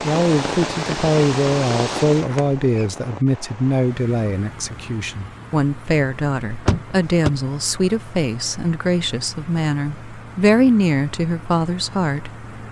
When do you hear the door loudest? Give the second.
7 s.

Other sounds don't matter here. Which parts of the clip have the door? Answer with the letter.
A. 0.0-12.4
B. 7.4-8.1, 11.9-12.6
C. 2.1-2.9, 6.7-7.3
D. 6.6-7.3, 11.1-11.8
C.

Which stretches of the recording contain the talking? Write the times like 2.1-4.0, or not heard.
0.0-12.4.